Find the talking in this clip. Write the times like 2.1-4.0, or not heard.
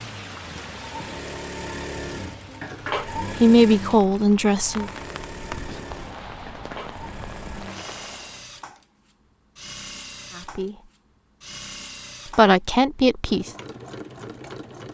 3.4-4.9, 10.3-10.9, 12.2-13.5.